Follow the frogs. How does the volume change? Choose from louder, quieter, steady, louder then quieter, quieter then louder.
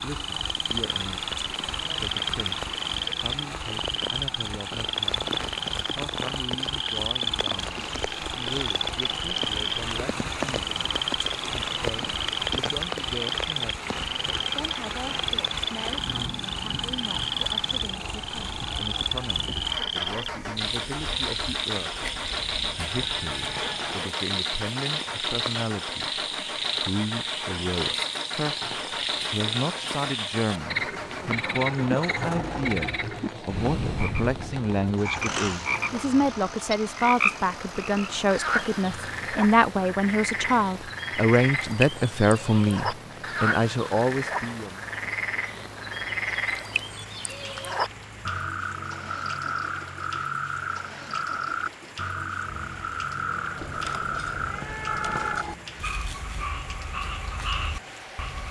steady.